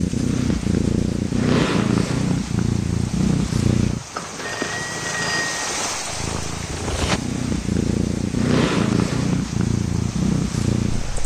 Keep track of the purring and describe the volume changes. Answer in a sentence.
The loudness of the purring goes down, then up.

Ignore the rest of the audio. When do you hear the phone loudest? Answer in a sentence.
The loudest moment of the phone is at 5 seconds.